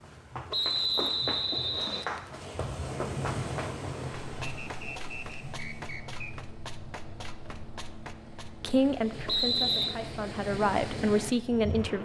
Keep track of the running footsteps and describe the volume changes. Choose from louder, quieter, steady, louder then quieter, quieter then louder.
quieter.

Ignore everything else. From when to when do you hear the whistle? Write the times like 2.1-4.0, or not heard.
0.5-2.0, 4.4-6.3, 9.2-9.9.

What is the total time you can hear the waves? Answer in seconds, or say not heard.
12 s.